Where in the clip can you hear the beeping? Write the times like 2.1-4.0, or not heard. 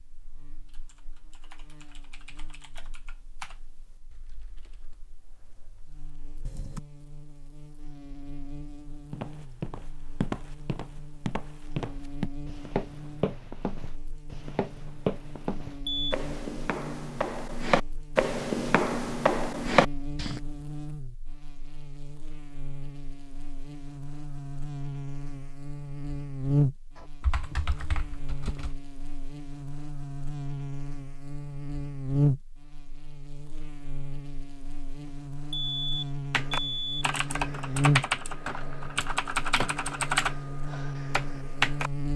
15.4-16.1, 35.0-37.0.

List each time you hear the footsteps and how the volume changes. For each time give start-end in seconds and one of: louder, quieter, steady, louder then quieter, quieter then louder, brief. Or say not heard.
9.1-20.4 louder.